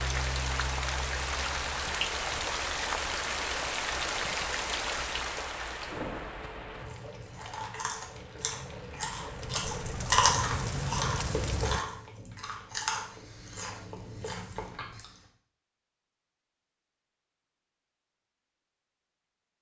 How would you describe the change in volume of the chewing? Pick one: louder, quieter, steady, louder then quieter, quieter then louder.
louder then quieter.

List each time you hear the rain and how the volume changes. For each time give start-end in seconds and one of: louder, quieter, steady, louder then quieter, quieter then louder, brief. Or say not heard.
0.0-11.8 quieter then louder.